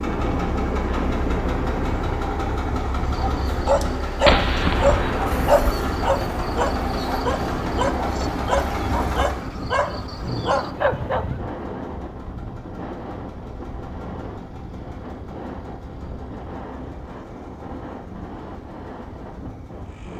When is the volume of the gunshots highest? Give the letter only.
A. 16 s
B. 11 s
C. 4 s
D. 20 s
C.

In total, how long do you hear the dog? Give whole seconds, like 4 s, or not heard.
8 s.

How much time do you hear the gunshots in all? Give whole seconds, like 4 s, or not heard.
2 s.